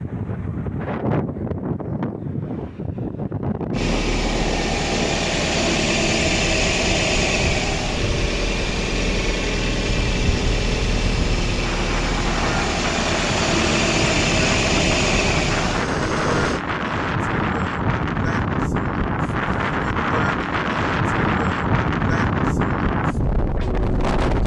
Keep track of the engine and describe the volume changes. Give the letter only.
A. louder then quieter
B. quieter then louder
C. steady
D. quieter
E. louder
C.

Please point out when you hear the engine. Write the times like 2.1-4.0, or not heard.
3.7-16.6.